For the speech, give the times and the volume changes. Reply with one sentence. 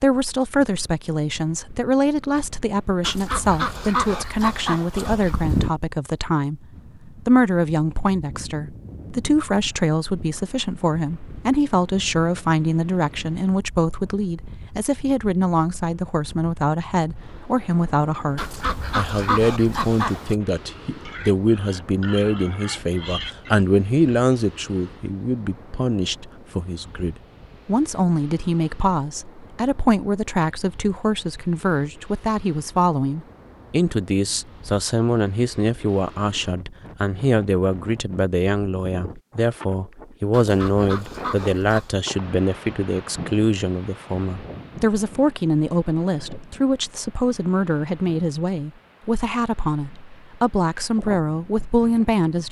The speech can be heard from 0.0 to 52.4 s, at a steady volume.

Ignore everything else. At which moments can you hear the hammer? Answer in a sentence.
The hammer can't be heard in this clip.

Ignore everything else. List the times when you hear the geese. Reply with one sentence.
You can hear the geese from 3.0 to 5.8 s, from 18.4 to 20.4 s and from 40.3 to 41.9 s.